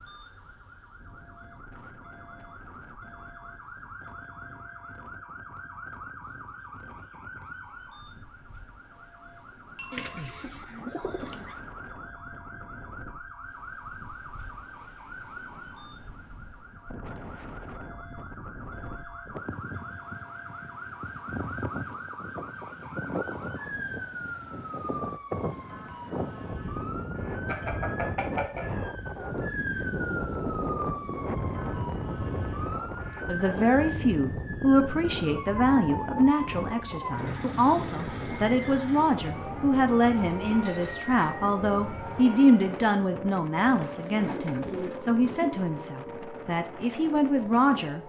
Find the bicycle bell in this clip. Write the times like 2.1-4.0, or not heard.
9.8-10.4, 27.4-28.9, 40.6-41.5.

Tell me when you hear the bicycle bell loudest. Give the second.
10 s.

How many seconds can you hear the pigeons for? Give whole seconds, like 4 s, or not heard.
3 s.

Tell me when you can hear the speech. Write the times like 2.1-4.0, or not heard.
33.2-48.0.